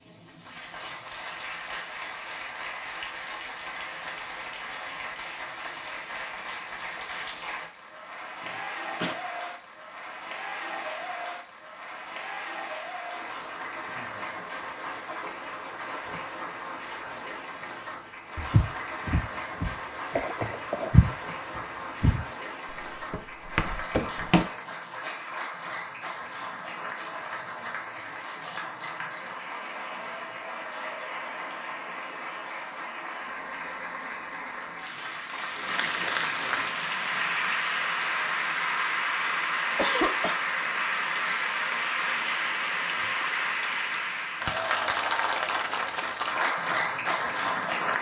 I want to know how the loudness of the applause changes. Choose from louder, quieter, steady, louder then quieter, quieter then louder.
louder.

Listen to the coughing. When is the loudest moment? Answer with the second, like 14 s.
40 s.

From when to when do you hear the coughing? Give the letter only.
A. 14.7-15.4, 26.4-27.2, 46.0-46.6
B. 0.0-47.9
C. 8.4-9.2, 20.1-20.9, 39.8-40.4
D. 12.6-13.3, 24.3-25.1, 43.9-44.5
C.